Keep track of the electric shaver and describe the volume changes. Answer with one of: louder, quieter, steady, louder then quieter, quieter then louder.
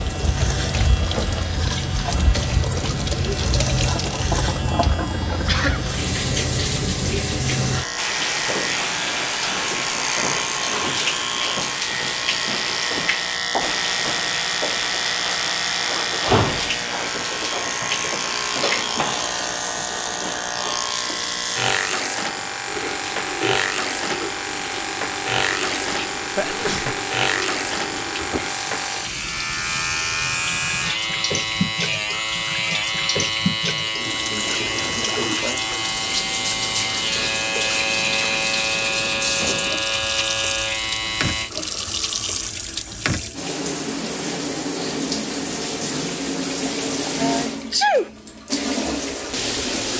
steady.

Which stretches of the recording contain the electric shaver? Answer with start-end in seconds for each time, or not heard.
0.0-41.5.